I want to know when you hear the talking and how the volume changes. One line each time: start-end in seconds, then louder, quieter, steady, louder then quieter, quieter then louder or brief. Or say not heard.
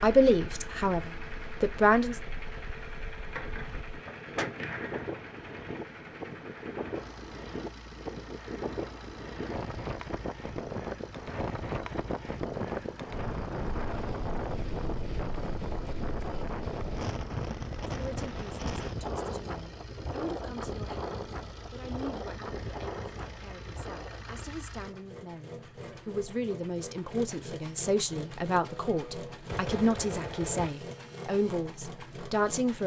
0.0-2.2 brief
17.9-32.8 louder.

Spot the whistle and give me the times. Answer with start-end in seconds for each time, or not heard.
not heard.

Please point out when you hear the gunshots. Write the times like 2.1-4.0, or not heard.
3.1-5.0, 28.6-30.7.